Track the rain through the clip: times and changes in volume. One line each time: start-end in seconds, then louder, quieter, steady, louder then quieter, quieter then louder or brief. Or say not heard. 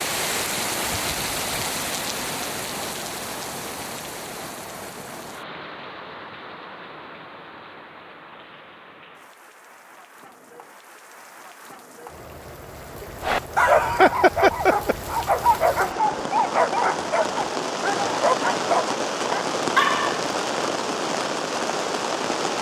0.0-22.5 quieter then louder.